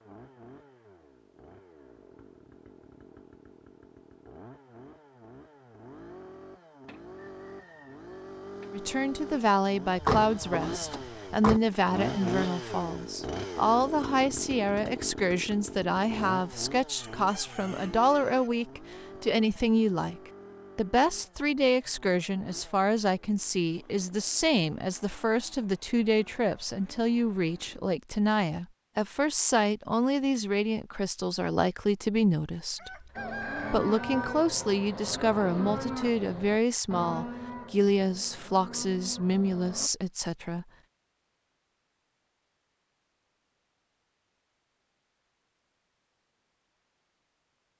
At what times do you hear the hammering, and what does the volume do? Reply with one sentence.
The hammering can't be heard in this clip.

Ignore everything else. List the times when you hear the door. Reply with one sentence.
You can hear the door from 9.9 to 11.6 s.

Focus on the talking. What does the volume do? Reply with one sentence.
The volume of the talking stays about the same.